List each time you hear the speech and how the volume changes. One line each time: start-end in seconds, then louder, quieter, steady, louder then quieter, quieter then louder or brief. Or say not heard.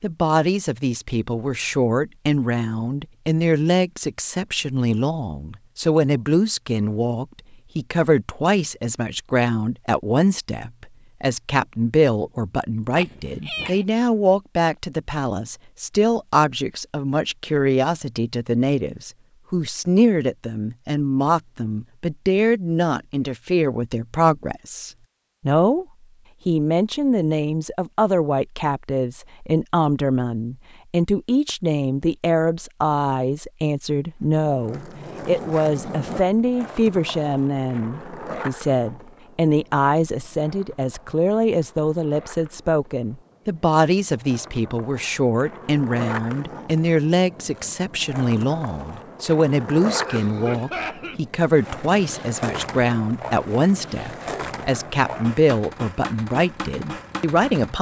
0.0-25.9 steady
26.4-57.7 steady.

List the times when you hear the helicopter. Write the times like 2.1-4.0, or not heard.
not heard.